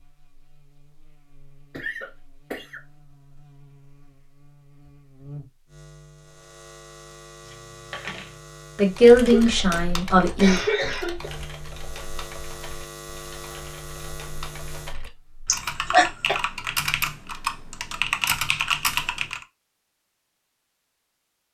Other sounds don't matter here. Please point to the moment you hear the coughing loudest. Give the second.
16 s.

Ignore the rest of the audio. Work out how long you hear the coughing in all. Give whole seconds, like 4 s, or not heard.
4 s.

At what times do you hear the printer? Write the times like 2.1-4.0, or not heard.
not heard.